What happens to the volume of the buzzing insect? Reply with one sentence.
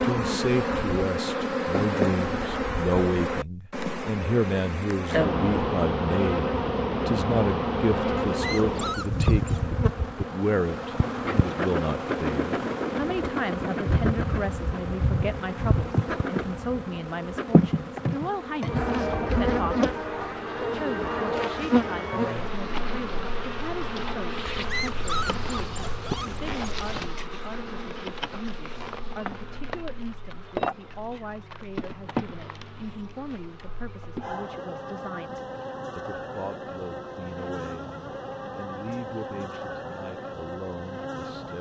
The loudness of the buzzing insect goes down.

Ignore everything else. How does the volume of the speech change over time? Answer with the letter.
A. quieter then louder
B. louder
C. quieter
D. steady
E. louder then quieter
C.